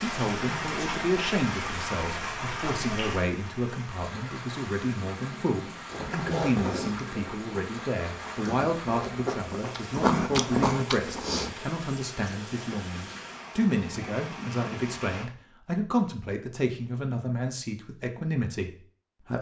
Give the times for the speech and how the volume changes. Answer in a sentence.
The speech can be heard from 0.0 to 19.3 s, at a steady volume.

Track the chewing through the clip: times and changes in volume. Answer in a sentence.
The chewing can be heard from 5.9 to 11.5 s, getting quieter then louder.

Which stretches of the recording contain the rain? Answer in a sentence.
The rain can be heard from 0.0 to 15.2 s.